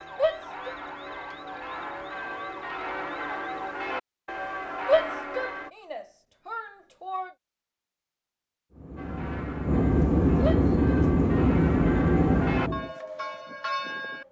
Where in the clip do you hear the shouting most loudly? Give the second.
5 s.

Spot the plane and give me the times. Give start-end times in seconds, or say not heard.
8.7-12.9.